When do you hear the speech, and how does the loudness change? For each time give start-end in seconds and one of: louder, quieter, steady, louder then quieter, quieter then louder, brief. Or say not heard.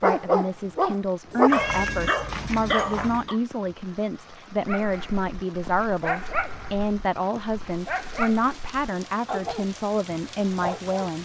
0.0-11.2 steady.